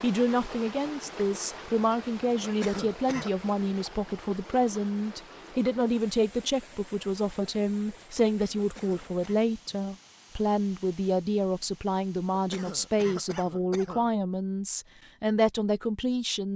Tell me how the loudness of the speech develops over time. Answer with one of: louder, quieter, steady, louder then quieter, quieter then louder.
steady.